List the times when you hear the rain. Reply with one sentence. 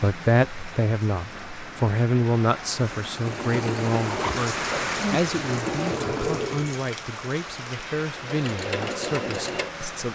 You can hear the rain from 0.0 to 10.1 s.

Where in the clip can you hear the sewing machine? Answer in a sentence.
You can hear the sewing machine from 3.1 to 6.8 s and from 8.2 to 10.1 s.